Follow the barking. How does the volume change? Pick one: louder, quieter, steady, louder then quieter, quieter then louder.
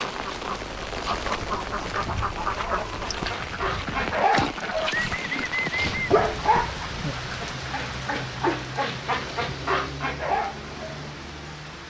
steady.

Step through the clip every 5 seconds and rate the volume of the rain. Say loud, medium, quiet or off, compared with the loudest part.
loud, loud, medium.